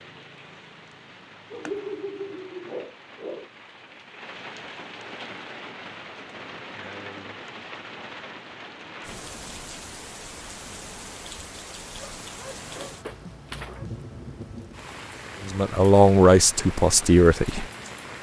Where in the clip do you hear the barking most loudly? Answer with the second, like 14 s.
2 s.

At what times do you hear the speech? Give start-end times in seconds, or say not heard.
15.4-17.6.